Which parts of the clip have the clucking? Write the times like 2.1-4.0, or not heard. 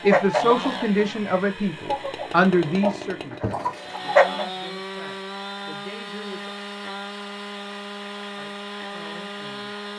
0.0-1.2, 1.9-4.5.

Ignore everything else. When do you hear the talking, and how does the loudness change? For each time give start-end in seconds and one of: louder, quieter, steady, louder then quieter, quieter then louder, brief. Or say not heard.
0.0-6.5 quieter
8.3-9.8 brief.